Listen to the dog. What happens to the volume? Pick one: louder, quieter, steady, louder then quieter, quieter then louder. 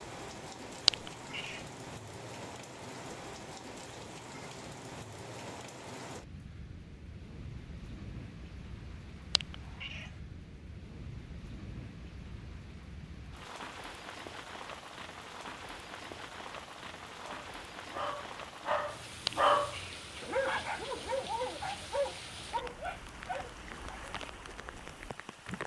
louder then quieter.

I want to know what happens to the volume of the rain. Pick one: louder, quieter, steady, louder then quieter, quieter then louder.
steady.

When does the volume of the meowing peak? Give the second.
1 s.